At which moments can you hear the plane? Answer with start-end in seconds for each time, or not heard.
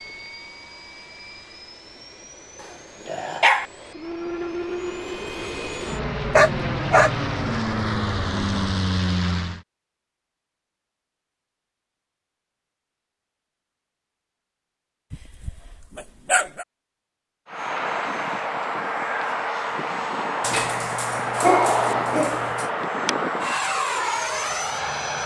0.0-9.6, 17.4-25.2.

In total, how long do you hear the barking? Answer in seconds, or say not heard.
5 s.